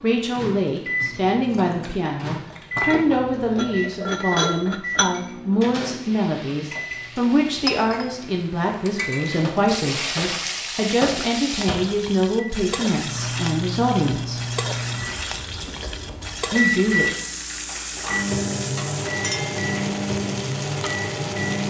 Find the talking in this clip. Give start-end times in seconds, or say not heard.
0.0-14.4, 16.5-17.1.